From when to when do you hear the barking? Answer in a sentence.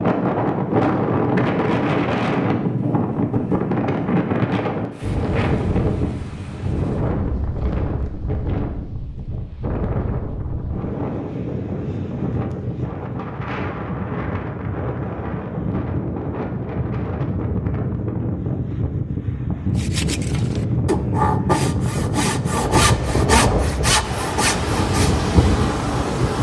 The barking can't be heard in this clip.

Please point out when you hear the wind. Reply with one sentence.
The wind can be heard from 0.0 to 26.3 s.